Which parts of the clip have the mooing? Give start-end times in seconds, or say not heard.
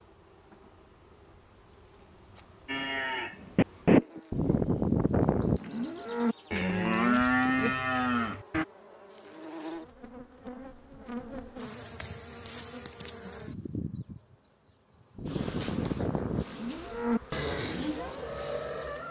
2.6-8.7, 15.2-19.0.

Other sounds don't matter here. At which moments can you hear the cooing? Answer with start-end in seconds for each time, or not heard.
not heard.